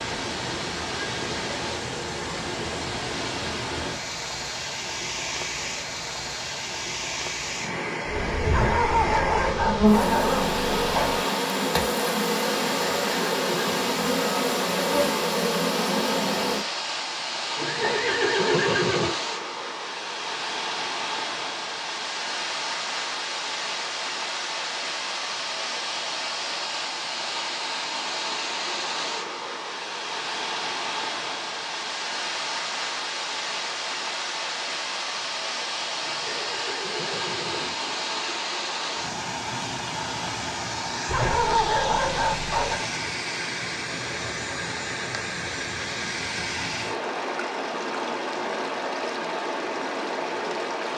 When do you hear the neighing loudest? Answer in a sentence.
The loudest moment of the neighing is at 19 seconds.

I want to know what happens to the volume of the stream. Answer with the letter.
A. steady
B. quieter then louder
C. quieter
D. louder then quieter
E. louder
A.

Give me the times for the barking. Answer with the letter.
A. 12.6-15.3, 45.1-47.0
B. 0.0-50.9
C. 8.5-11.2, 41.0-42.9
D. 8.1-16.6
C.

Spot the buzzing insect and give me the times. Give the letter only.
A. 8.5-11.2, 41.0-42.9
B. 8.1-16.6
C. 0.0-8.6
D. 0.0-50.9
B.